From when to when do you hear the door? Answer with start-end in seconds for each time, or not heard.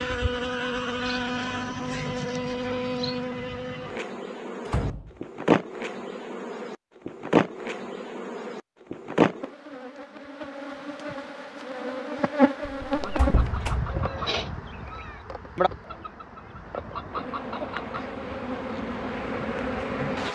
4.7-5.1, 12.7-13.8.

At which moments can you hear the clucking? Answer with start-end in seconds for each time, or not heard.
13.0-18.1.